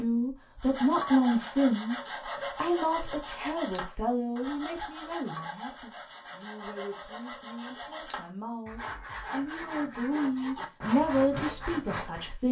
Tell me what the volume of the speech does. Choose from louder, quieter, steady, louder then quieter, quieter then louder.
quieter then louder.